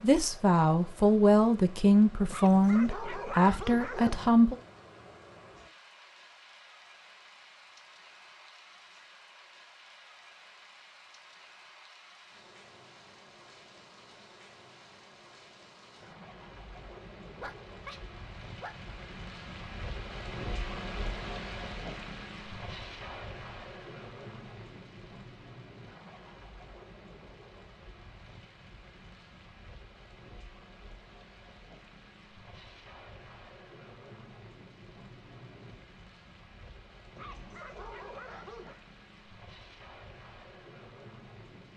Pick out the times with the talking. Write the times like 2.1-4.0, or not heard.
0.0-4.5.